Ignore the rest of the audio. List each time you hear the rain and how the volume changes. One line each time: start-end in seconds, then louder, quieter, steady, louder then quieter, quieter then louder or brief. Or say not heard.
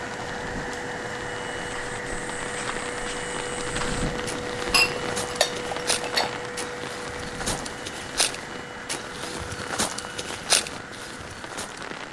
0.0-12.0 louder then quieter.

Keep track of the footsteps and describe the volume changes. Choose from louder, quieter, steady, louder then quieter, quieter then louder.
louder.